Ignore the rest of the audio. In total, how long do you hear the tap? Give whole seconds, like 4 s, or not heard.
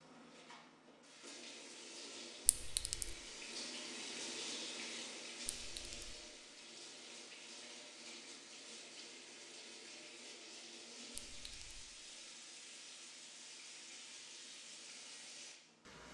16 s.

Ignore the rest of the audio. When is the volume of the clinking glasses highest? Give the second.
3 s.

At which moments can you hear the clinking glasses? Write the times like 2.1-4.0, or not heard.
2.5-3.1, 5.5-6.2, 11.2-11.8.